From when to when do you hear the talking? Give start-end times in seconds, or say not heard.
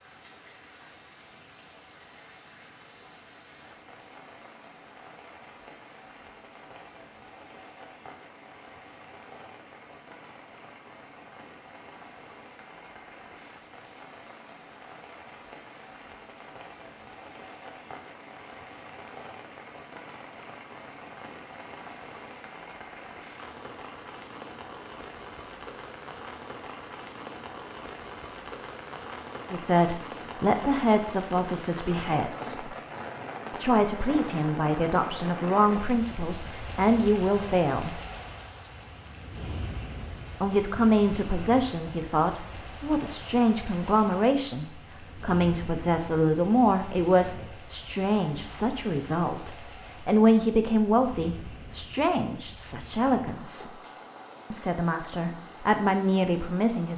29.5-32.7, 33.6-38.0, 40.4-53.8, 54.5-56.9.